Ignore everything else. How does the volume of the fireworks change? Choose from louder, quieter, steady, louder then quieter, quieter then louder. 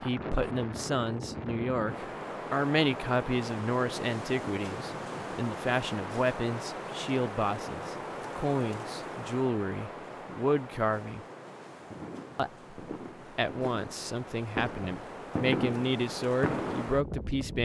louder.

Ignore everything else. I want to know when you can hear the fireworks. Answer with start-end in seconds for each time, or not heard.
11.8-16.9.